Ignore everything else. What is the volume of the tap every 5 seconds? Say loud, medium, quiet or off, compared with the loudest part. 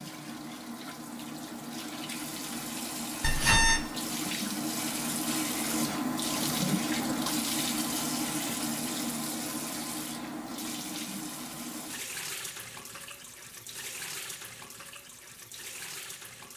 medium, loud, medium, quiet.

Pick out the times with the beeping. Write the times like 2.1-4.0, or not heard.
3.2-3.9.